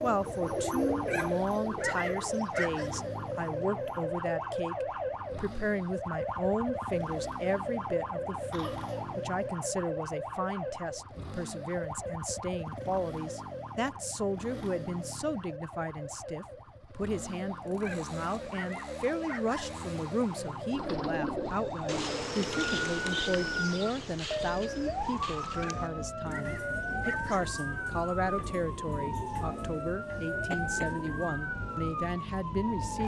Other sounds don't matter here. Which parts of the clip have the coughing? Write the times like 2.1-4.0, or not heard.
8.5-9.2, 30.4-31.1.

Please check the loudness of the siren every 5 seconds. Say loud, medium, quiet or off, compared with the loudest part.
loud, loud, medium, medium, loud, loud, loud.